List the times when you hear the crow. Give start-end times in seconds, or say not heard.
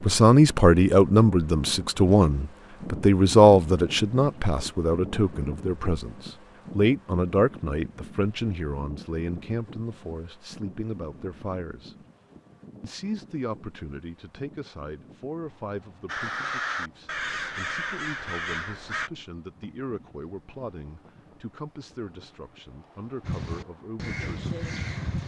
16.1-19.1, 23.2-25.2.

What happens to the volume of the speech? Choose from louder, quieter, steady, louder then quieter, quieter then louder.
quieter.